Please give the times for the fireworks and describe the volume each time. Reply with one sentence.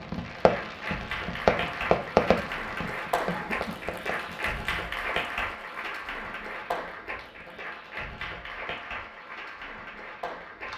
The fireworks can be heard from 0.0 to 4.5 s, getting louder then quieter.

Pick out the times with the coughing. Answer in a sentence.
The coughing can be heard from 3.2 to 3.9 s.